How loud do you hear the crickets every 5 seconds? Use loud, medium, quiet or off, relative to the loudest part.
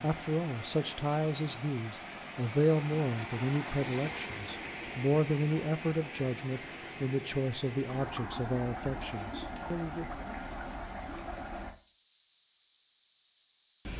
medium, loud, loud.